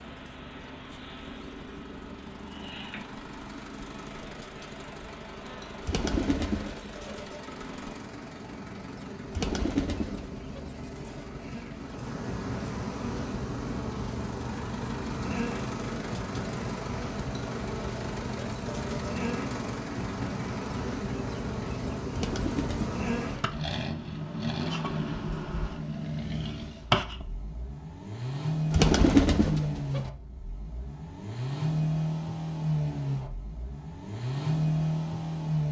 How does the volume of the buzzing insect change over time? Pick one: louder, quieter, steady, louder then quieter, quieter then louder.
louder.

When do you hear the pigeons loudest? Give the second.
29 s.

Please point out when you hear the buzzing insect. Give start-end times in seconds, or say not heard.
0.0-27.2.